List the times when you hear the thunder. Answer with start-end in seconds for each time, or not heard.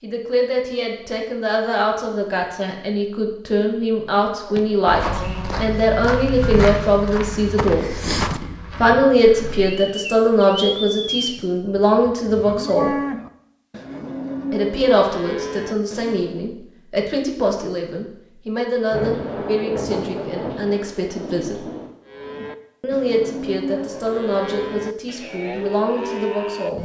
18.9-21.9.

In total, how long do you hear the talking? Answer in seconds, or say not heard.
23 s.